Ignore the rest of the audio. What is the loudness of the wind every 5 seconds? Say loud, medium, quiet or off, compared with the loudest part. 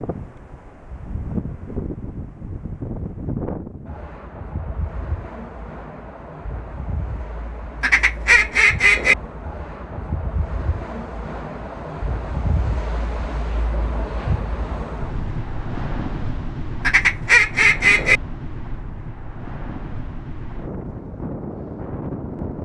loud, medium, loud, loud, loud.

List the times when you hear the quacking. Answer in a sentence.
The quacking can be heard from 7.8 to 9.2 s and from 16.8 to 18.2 s.